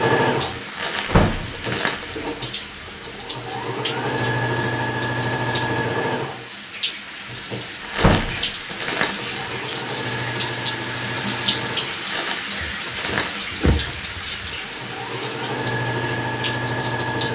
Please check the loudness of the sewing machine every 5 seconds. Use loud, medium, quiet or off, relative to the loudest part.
loud, loud, medium, loud.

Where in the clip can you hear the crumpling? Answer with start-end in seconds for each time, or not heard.
0.7-2.3, 7.8-9.8, 11.9-13.5.